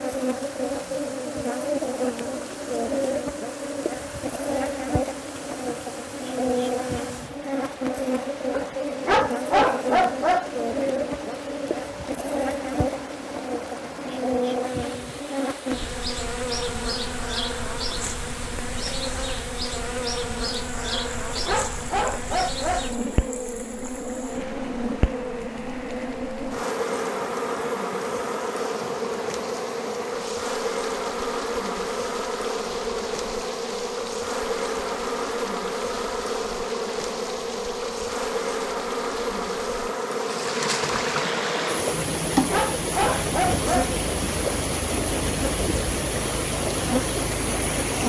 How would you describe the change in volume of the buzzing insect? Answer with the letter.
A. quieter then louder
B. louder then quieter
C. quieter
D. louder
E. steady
E.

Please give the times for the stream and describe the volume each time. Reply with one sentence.
The stream can be heard from 0.0 to 48.0 s, getting louder.